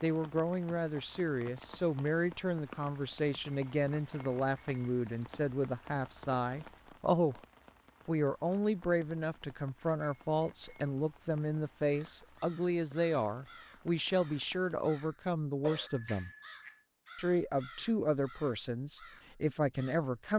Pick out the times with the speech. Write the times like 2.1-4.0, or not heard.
0.0-7.4, 8.1-16.3, 17.1-20.3.